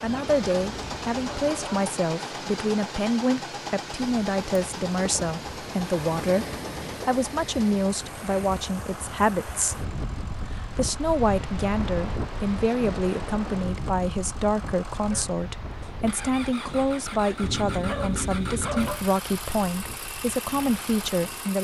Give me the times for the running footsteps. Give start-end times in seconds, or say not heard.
not heard.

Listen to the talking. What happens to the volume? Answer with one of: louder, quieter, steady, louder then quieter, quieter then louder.
steady.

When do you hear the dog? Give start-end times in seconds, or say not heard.
0.0-1.9, 17.4-19.0.